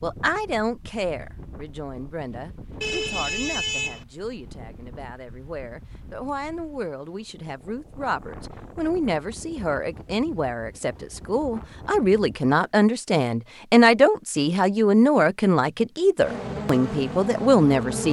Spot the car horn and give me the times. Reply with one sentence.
You can hear the car horn from 2.8 to 4.0 s.